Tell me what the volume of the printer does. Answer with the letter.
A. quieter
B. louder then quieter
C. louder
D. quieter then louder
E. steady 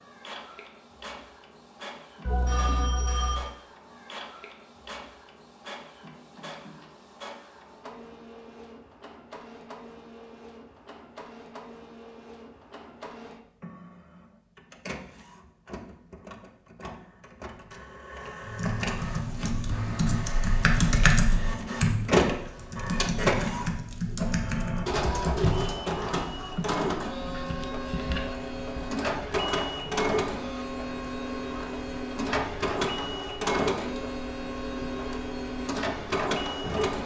C.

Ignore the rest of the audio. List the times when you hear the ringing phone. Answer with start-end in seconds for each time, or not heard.
2.2-3.5.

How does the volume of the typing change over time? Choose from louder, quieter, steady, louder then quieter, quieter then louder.
louder then quieter.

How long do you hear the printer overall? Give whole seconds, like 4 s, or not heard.
37 s.